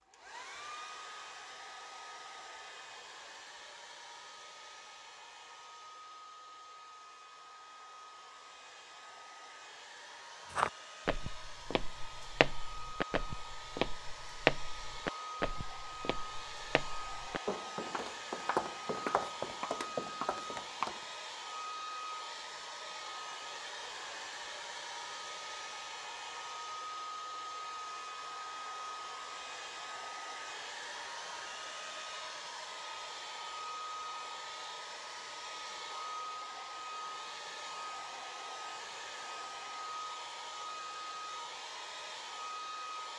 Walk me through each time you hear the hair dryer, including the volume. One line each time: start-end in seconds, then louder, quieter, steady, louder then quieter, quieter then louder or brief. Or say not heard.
0.0-43.1 louder.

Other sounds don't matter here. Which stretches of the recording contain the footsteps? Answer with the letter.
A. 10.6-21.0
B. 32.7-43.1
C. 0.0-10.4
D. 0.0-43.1
A.